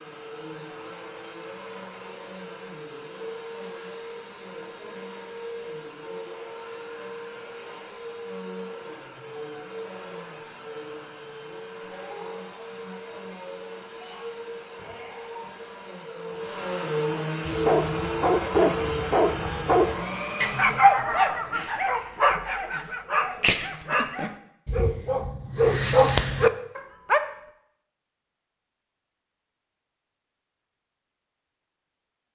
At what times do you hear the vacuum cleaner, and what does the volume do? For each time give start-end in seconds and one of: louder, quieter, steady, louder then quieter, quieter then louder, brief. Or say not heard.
0.0-20.9 louder.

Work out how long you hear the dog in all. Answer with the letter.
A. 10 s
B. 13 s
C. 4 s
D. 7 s
A.